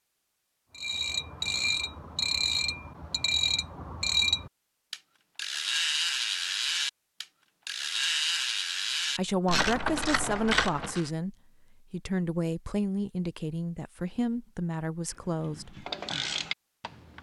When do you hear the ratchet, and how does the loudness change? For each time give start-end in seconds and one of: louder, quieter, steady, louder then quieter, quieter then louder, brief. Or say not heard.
0.8-11.1 steady
15.4-17.1 brief.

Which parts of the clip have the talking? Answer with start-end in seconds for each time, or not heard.
9.2-15.8.